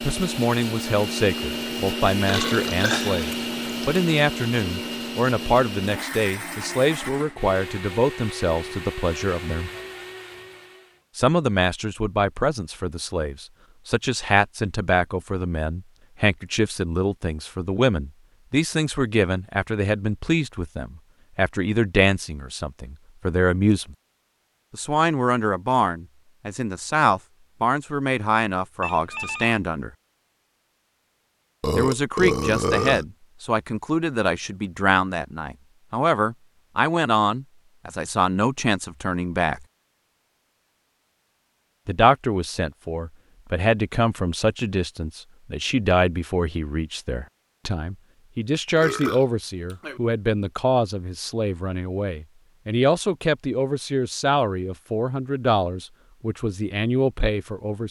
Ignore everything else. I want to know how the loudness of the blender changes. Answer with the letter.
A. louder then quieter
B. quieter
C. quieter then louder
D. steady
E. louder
B.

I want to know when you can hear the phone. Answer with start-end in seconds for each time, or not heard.
28.8-29.6.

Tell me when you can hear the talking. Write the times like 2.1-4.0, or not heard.
0.0-9.7, 11.2-23.9, 24.7-29.9, 31.7-39.6, 41.9-57.8.